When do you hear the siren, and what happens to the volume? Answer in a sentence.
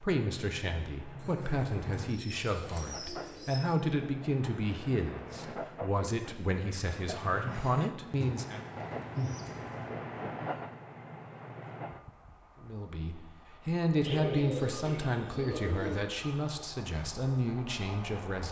You can't hear the siren here.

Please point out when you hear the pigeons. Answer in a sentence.
You can hear the pigeons from 1.1 to 3.6 s, from 8.2 to 9.9 s and from 14.0 to 15.9 s.